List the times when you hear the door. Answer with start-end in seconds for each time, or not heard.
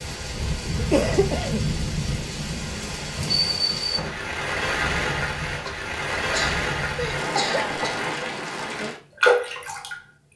3.9-4.3.